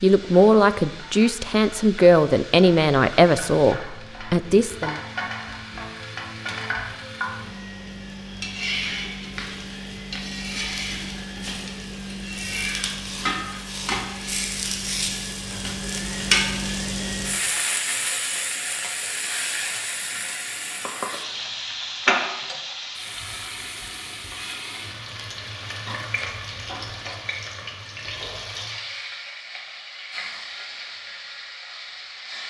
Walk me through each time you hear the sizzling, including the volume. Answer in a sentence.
You can hear the sizzling from 0.0 to 32.4 s, getting louder then quieter.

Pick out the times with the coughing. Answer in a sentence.
The coughing can't be heard in this clip.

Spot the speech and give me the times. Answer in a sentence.
The speech can be heard from 0.0 to 5.0 s.